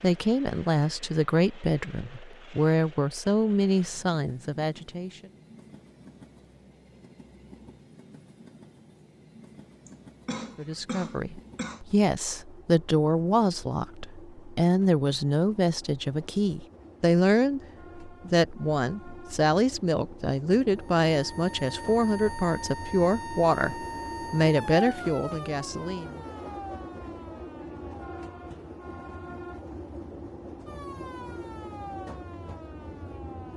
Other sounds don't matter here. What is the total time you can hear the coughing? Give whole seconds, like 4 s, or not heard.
2 s.